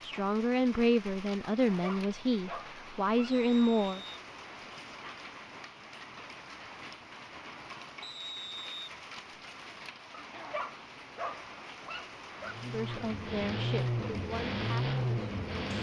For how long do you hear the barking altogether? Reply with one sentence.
You can hear the barking for 4 seconds altogether.